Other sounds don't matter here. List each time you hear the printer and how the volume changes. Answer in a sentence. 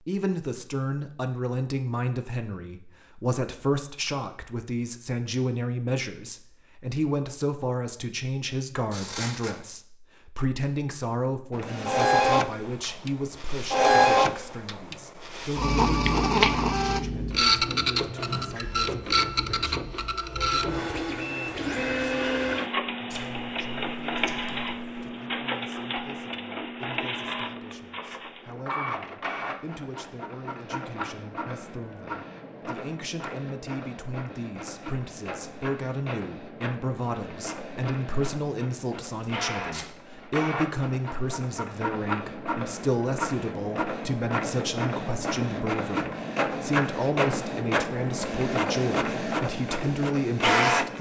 The printer can be heard from 11.6 to 50.9 s, getting quieter then louder.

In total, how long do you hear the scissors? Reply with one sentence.
You can hear the scissors for 3 seconds altogether.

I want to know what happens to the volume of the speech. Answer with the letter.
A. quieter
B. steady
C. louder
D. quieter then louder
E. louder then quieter
D.